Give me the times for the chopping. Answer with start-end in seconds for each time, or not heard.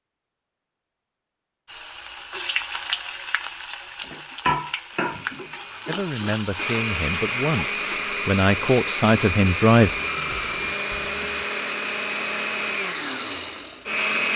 not heard.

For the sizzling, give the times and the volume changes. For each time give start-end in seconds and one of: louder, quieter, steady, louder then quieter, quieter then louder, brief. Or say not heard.
1.6-11.4 quieter.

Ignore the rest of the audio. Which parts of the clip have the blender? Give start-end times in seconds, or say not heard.
5.0-14.3.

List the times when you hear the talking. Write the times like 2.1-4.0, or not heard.
5.8-9.9.